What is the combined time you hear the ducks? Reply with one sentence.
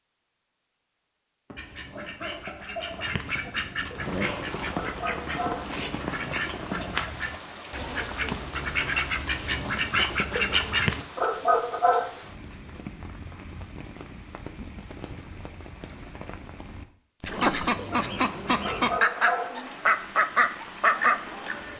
The ducks can be heard for 14 seconds in total.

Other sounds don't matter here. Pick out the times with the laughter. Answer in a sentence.
The laughter can be heard from 1.5 to 3.0 s.